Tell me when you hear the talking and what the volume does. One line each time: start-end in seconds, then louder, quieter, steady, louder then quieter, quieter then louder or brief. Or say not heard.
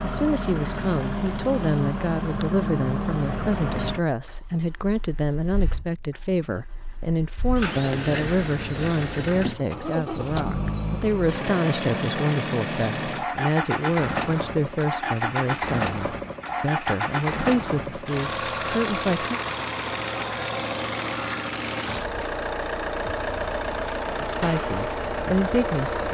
0.0-19.4 steady
24.2-26.0 brief.